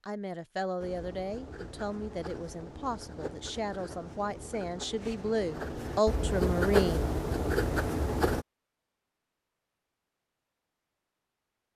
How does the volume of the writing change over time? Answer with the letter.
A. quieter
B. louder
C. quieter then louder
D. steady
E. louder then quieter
B.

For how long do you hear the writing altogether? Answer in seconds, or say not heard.
8 s.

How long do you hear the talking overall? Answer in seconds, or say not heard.
7 s.